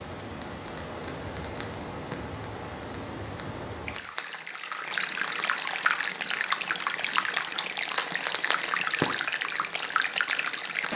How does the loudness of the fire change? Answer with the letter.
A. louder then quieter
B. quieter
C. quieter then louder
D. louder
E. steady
D.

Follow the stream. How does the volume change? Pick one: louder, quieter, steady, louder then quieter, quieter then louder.
louder.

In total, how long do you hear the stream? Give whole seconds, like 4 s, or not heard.
11 s.